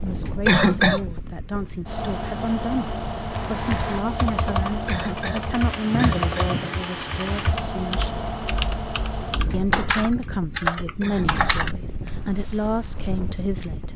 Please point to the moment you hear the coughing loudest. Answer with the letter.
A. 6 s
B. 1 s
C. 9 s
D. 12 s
B.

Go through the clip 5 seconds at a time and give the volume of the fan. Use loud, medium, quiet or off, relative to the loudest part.
loud, loud, medium.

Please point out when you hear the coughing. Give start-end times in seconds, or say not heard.
0.5-1.0, 4.8-6.6, 11.0-11.6.